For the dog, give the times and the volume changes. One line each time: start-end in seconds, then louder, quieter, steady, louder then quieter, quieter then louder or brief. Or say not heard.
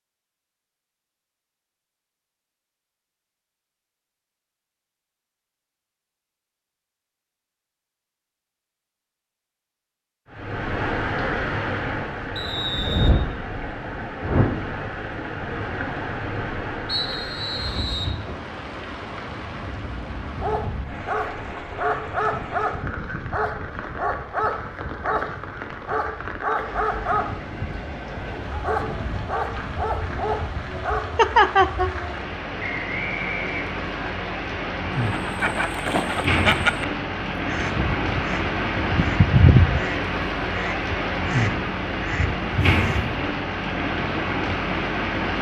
20.4-31.0 steady.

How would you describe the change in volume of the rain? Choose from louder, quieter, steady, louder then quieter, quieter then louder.
quieter then louder.